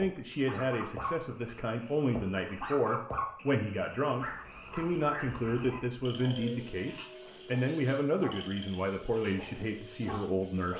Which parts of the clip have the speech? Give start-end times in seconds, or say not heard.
0.0-10.7.